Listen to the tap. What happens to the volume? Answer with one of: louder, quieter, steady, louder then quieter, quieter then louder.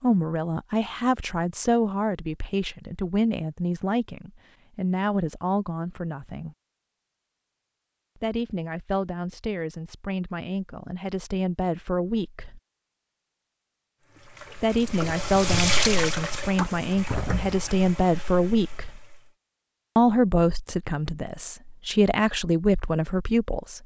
louder then quieter.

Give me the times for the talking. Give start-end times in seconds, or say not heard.
0.0-6.5, 8.2-12.6, 14.6-19.0, 19.9-23.8.